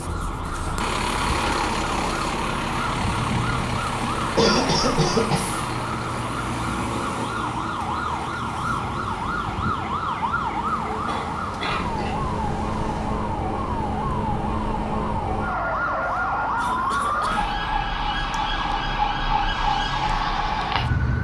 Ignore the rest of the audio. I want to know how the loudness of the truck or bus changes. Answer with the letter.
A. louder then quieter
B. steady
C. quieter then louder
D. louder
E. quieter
E.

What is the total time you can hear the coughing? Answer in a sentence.
You can hear the coughing for 4 seconds altogether.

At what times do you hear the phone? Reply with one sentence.
The phone can't be heard in this clip.